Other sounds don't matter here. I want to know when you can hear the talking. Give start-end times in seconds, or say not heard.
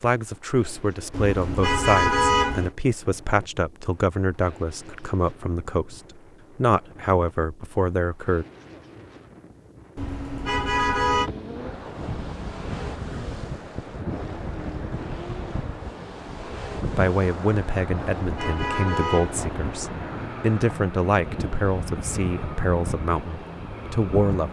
0.0-8.4, 16.9-24.4.